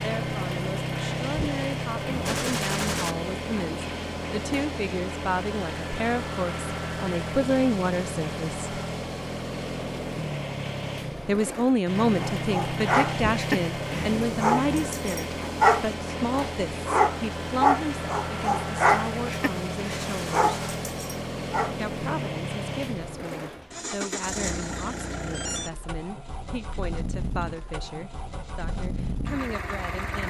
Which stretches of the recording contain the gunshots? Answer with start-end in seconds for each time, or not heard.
2.2-3.1, 20.0-20.8.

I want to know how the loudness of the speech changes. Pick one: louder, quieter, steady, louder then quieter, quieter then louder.
louder then quieter.